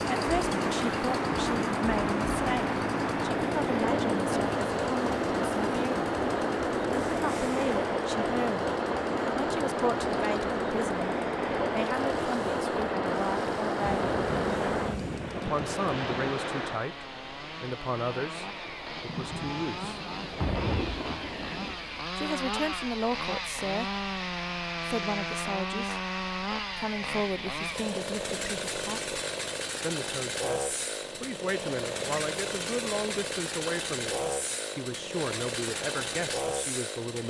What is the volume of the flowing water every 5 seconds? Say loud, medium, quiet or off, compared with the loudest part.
loud, loud, loud, medium, quiet, off, off, off.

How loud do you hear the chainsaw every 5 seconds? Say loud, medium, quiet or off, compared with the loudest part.
loud, loud, medium, medium, loud, loud, loud, loud.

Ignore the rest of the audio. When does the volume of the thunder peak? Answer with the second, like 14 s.
21 s.